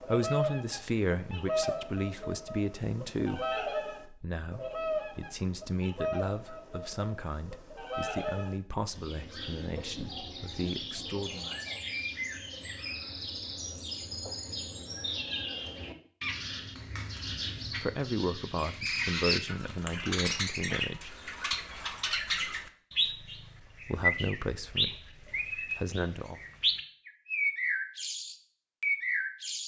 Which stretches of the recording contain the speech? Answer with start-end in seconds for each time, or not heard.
0.0-11.5, 17.7-21.1, 23.1-26.4.